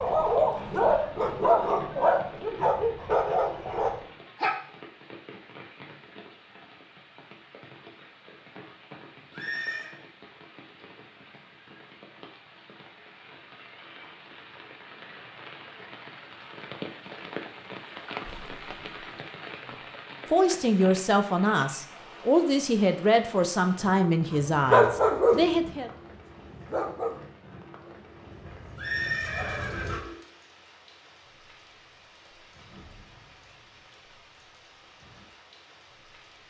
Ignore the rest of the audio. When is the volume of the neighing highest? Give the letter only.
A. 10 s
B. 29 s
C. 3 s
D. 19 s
B.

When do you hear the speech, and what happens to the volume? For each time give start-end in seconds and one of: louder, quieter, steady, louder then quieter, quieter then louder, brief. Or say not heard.
20.3-25.9 steady.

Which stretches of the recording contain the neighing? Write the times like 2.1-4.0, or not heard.
9.3-9.9, 18.2-19.1, 28.8-30.2.